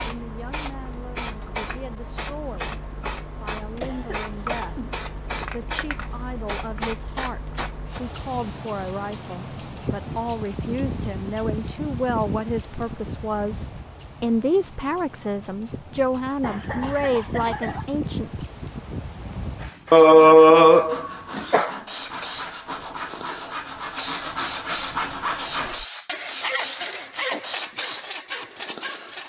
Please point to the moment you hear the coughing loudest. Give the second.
20 s.